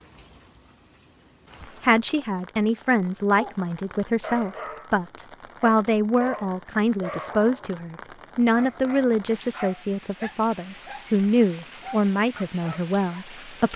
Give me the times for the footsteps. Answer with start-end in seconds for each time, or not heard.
not heard.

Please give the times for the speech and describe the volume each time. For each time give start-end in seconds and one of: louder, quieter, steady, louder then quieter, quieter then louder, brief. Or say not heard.
1.8-13.7 steady.